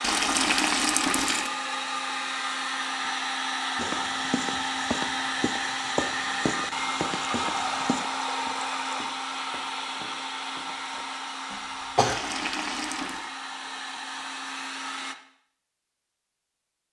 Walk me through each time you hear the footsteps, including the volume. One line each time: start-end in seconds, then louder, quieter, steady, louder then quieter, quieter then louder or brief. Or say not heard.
3.8-11.1 quieter.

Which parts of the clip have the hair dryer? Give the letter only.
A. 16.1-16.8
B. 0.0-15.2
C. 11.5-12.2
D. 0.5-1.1
B.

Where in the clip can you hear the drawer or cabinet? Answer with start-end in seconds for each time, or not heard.
not heard.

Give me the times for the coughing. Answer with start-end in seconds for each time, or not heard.
11.5-12.2.